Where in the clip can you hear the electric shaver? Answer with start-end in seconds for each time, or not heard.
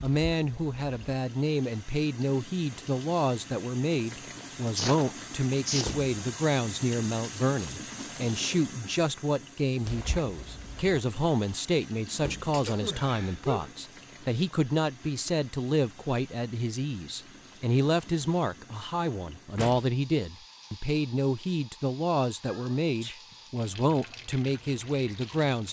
not heard.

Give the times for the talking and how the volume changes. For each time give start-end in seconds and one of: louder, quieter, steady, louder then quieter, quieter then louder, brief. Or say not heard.
0.0-25.6 steady.